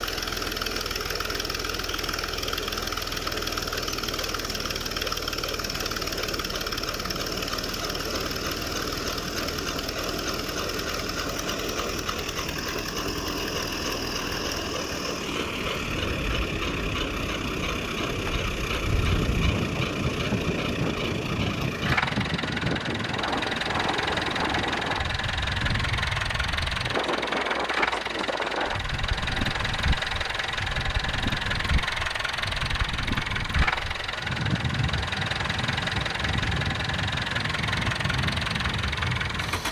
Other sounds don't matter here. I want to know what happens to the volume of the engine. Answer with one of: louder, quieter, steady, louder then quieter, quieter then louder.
steady.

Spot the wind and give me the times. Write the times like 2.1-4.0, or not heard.
15.8-39.6.